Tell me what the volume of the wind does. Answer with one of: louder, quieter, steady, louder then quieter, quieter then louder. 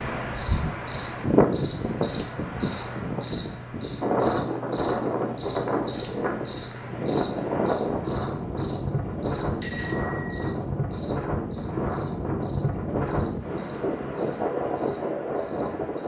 steady.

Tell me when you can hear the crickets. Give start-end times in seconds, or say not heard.
0.0-16.0.